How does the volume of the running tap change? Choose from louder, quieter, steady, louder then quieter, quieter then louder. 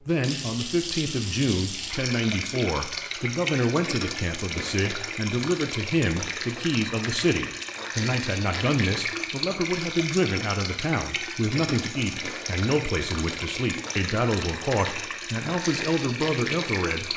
steady.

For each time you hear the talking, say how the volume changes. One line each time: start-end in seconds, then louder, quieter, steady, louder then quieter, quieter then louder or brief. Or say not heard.
0.1-17.1 steady.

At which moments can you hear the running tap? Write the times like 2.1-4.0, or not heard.
0.0-17.1.